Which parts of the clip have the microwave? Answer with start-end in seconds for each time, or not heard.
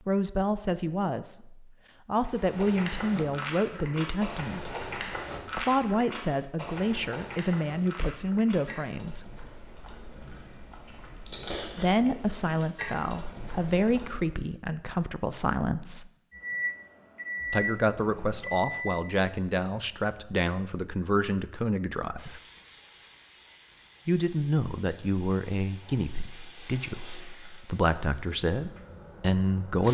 16.3-19.0.